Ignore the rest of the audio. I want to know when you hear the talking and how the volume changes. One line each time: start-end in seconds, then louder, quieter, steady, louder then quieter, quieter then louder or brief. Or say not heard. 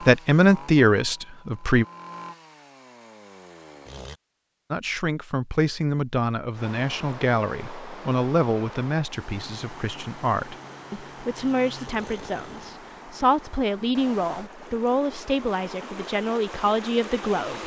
0.0-1.9 brief
4.7-17.6 steady.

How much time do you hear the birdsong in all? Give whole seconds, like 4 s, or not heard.
not heard.